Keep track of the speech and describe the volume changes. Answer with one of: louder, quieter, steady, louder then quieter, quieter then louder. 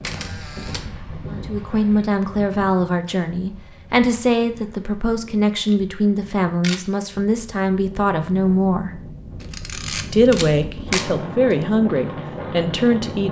steady.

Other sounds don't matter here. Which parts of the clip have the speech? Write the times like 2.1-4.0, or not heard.
1.3-9.0, 10.1-13.2.